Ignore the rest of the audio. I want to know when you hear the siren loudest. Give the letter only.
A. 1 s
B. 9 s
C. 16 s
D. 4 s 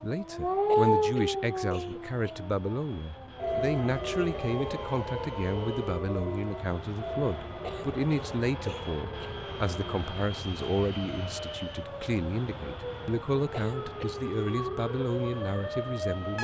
A.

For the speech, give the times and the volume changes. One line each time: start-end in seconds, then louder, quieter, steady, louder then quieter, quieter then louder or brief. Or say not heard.
0.0-16.3 steady.